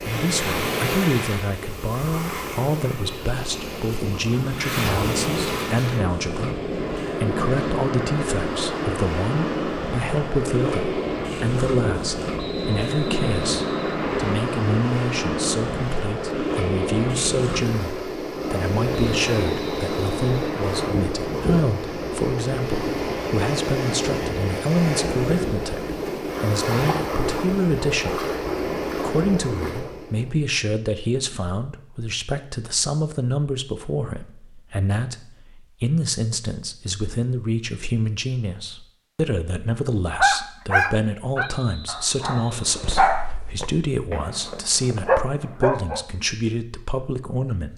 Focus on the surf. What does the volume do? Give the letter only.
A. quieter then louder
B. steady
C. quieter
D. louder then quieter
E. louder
B.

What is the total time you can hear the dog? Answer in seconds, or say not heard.
6 s.